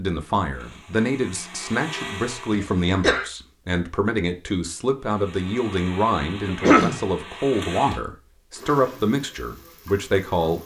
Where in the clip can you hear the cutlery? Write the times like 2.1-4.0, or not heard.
not heard.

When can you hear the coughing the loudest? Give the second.
7 s.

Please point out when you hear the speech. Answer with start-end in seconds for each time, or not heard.
0.0-10.6.